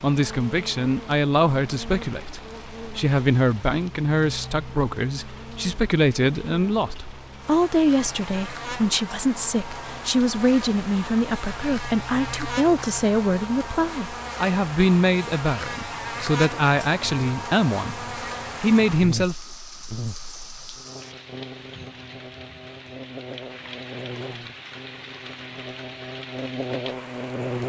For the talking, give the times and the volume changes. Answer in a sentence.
The talking can be heard from 0.0 to 19.4 s, at a steady volume.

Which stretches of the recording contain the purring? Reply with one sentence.
The purring can't be heard in this clip.